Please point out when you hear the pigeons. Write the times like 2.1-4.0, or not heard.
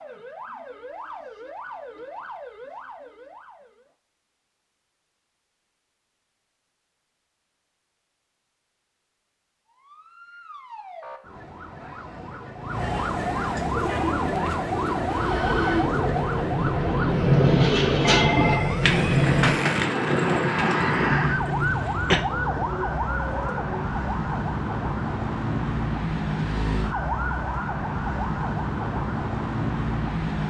13.7-23.9.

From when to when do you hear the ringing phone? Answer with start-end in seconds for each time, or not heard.
18.1-18.8.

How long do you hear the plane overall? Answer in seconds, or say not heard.
6 s.